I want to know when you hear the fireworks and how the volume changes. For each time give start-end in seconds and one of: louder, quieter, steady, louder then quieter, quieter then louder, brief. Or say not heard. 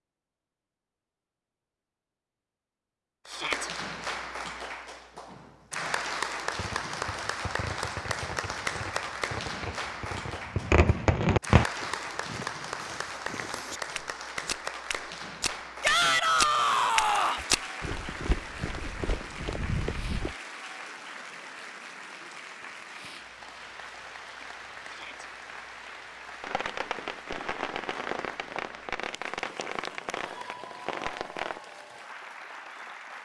6.5-11.7 louder
26.4-31.6 steady.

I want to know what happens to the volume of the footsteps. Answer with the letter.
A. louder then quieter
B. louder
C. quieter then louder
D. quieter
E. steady
A.